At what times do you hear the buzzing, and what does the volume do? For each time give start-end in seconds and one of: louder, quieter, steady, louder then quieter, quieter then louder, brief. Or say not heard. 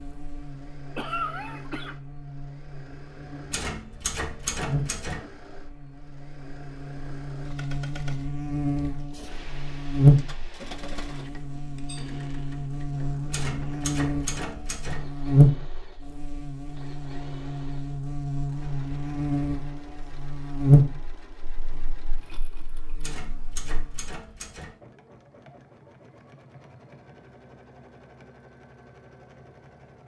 0.0-24.1 louder.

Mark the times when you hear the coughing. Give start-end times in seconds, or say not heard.
0.9-1.9.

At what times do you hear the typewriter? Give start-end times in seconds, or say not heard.
3.5-5.2, 13.3-15.1, 23.0-24.8.